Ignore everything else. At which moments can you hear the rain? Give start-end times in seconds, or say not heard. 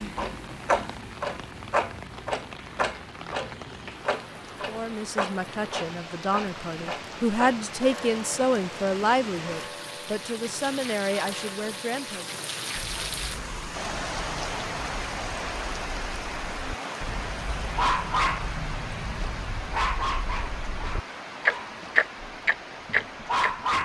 0.0-23.7.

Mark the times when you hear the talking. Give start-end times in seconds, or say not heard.
4.7-12.3.